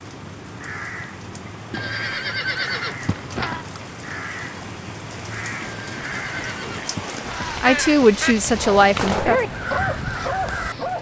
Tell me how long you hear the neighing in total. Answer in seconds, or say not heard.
4 s.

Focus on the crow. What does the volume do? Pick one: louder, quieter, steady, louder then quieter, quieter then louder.
louder.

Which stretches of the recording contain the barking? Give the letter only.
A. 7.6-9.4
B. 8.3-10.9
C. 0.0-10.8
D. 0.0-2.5
B.